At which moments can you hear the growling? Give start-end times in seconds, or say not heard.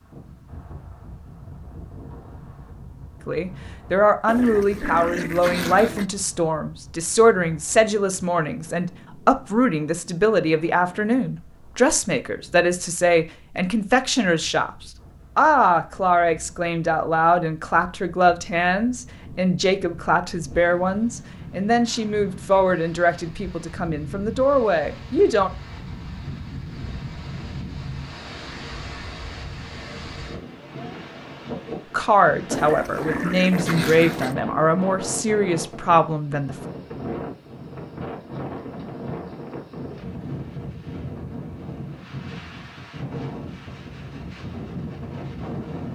4.2-6.0, 32.5-34.4.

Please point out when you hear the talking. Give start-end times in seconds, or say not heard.
3.2-14.7, 15.3-25.5, 31.9-36.5.